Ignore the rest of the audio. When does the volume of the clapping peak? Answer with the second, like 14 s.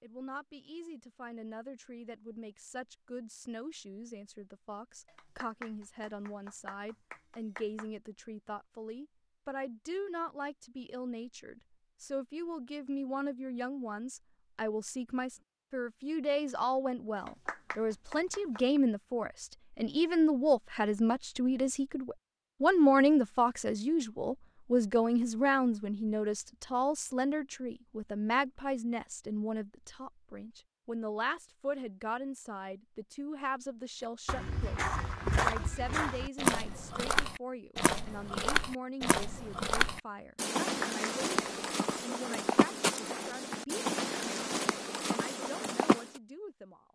41 s.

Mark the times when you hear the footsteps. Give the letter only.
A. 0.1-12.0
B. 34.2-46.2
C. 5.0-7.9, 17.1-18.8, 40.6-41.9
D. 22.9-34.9
B.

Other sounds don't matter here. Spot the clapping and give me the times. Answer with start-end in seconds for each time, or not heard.
5.0-7.9, 17.1-18.8, 40.6-41.9.